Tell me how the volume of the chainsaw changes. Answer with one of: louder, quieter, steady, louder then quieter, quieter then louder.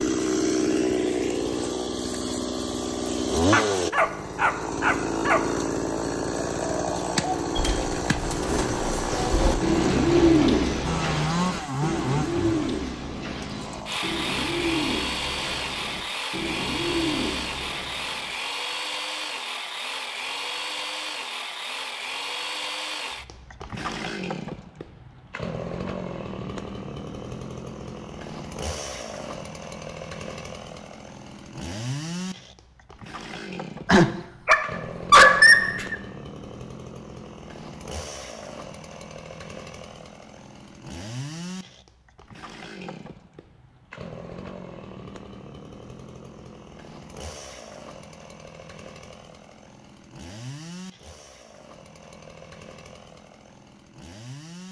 quieter.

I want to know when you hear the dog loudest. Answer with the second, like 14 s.
35 s.